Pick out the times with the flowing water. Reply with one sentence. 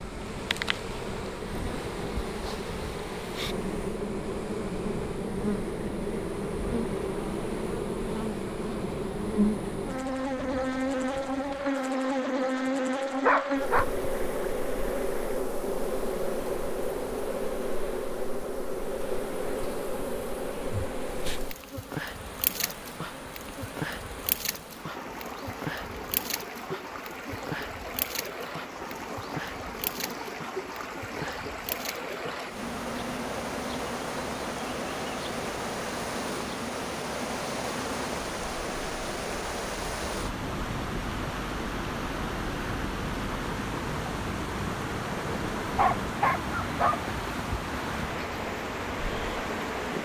You can hear the flowing water from 0.0 to 49.9 s.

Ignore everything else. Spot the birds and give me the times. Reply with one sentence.
You can't hear the birds here.